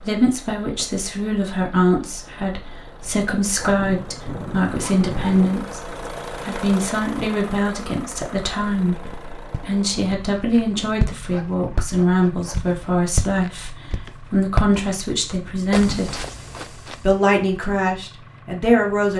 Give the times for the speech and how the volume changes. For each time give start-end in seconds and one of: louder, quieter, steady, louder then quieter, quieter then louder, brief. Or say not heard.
0.0-16.2 steady
17.0-19.1 brief.